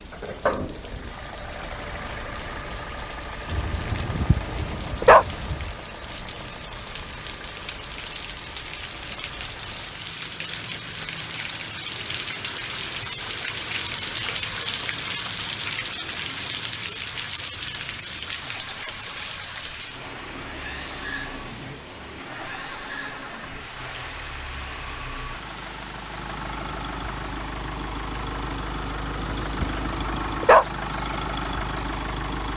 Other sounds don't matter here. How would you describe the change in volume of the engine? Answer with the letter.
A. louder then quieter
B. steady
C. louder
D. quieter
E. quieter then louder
E.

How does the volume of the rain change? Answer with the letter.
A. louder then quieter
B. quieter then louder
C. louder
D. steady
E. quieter
A.